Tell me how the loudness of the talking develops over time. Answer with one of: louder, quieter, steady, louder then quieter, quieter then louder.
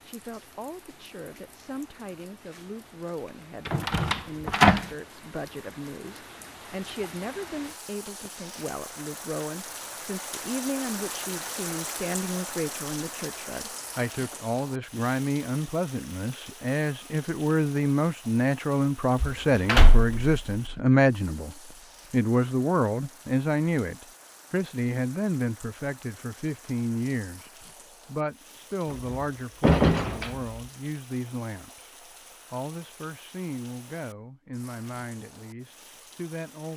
louder then quieter.